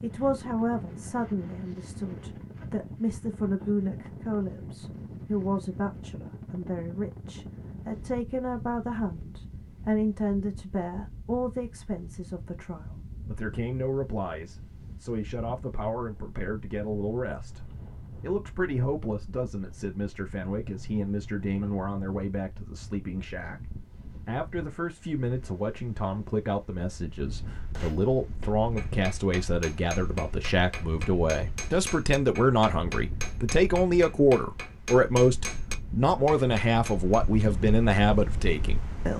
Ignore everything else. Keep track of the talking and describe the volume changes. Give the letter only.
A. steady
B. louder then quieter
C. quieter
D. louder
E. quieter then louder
D.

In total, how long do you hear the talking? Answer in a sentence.
You can hear the talking for 39 seconds altogether.